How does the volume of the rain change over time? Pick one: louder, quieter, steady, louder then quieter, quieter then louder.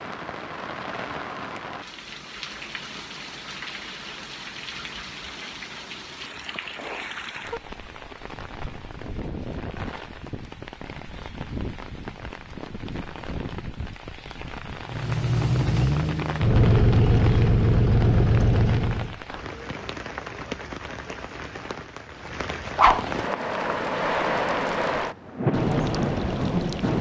louder.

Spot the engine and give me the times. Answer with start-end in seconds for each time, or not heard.
14.8-19.1.